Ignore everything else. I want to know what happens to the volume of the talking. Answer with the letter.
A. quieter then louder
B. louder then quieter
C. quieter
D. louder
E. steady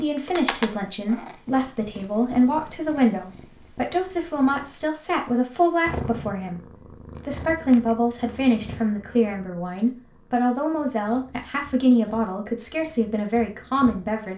E.